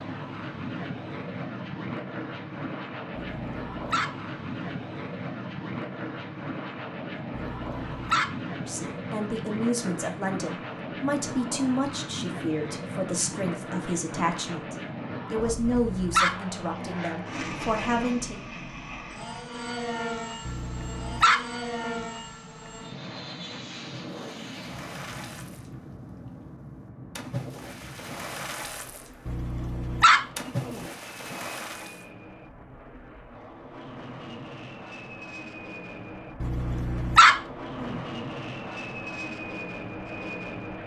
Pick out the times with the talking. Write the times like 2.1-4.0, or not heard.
8.6-18.4.